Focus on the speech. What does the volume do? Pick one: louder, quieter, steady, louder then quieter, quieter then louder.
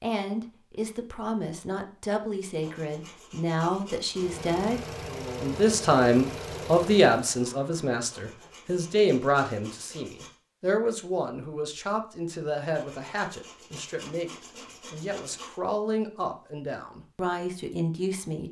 louder then quieter.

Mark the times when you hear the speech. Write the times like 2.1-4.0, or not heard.
0.0-4.8, 5.4-18.4.